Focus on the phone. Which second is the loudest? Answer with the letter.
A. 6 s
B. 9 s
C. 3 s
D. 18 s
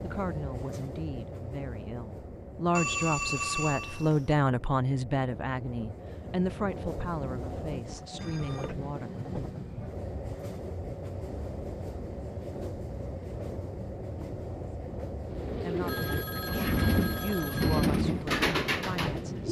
C.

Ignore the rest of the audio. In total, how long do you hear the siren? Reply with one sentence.
The siren can't be heard in this clip.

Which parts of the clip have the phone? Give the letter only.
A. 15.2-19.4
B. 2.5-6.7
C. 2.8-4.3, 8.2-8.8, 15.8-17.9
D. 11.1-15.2
C.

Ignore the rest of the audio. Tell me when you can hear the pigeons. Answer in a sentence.
The pigeons can be heard from 15.2 to 19.4 s.